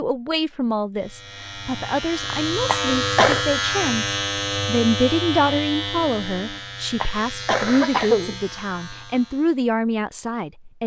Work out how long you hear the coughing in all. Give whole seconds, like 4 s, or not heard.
2 s.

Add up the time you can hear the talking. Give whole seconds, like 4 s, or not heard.
11 s.